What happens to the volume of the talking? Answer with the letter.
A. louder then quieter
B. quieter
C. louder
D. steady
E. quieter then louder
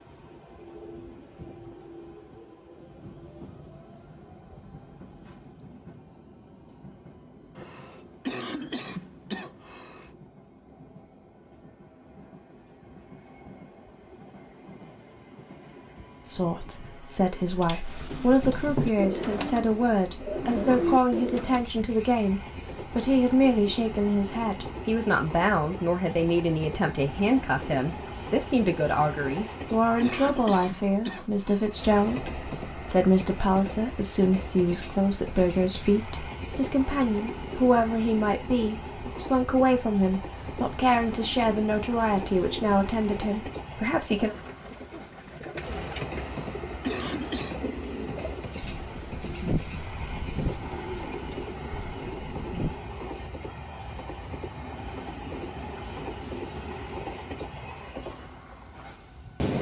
D.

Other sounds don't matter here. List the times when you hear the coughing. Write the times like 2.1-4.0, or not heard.
7.5-10.2, 29.3-31.8, 46.1-47.6.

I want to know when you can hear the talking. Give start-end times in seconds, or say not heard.
16.2-44.4.